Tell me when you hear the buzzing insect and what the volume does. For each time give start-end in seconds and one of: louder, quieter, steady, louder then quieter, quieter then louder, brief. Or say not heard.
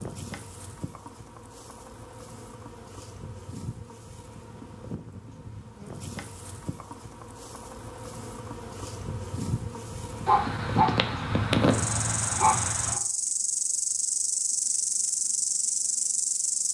0.0-16.7 louder.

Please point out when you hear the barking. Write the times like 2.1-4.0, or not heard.
10.2-13.0.